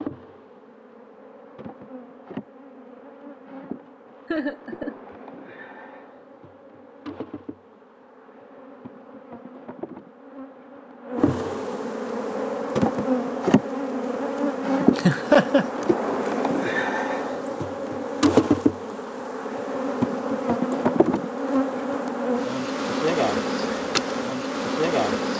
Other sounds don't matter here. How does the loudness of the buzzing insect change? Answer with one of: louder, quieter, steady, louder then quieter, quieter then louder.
louder.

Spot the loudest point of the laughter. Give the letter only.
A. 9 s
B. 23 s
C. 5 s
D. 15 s
D.